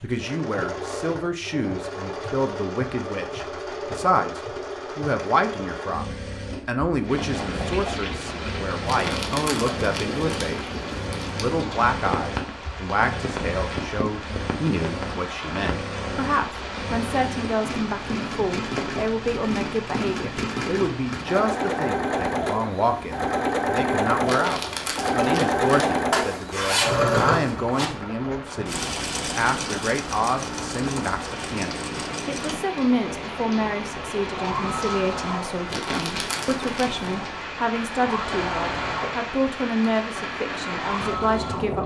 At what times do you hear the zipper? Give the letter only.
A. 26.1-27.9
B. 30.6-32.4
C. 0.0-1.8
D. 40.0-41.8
A.